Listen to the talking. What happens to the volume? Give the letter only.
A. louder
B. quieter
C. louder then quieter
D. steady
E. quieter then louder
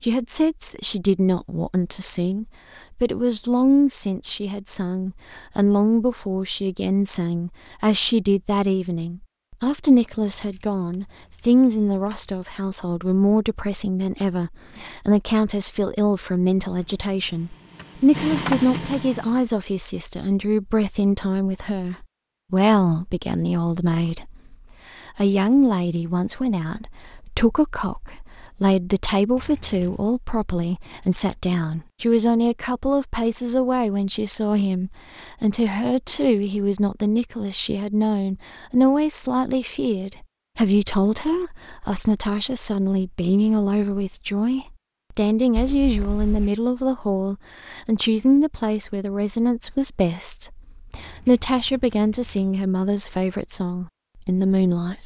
D.